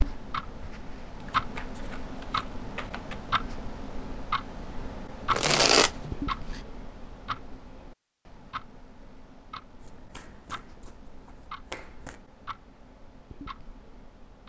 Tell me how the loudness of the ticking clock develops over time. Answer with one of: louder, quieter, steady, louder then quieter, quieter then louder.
quieter.